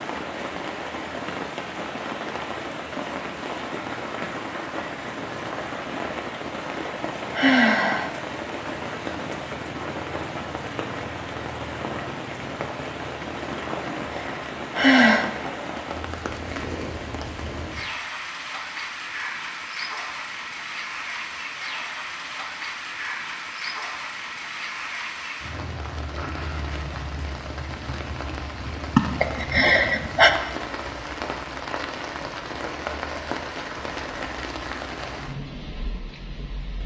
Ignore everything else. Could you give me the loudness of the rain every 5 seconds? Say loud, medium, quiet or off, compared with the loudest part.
loud, loud, loud, loud, loud, loud, loud, medium.